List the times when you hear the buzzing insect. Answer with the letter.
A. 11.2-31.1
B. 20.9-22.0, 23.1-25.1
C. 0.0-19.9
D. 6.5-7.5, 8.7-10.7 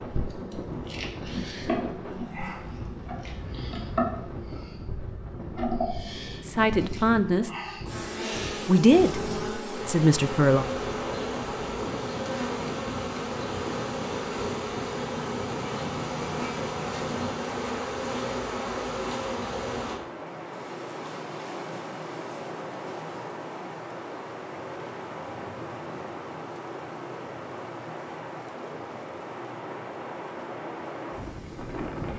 C.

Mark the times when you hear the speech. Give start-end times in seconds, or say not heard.
6.5-7.5, 8.7-10.7.